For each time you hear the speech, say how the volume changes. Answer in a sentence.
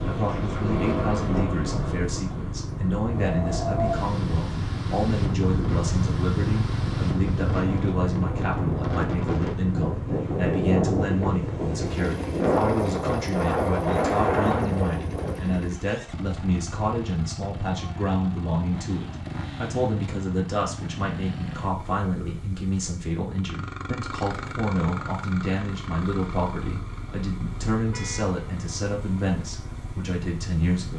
The speech can be heard from 0.0 to 30.9 s, at a steady volume.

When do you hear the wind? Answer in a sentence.
You can hear the wind from 0.0 to 15.6 s.